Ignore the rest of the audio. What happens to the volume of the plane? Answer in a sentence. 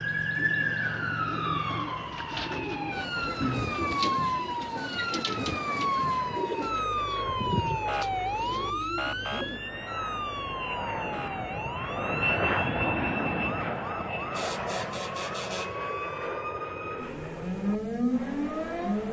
The volume of the plane goes up, then down.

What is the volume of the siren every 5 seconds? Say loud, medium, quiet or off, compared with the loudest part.
loud, loud, medium, loud.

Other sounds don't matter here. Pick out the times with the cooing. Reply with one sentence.
You can hear the cooing from 0.3 to 9.6 s.